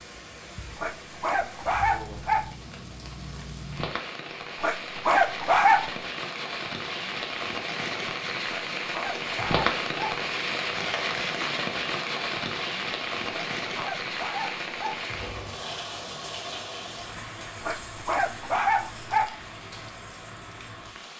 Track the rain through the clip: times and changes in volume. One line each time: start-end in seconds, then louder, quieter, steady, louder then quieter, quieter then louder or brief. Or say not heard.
0.0-21.1 louder then quieter.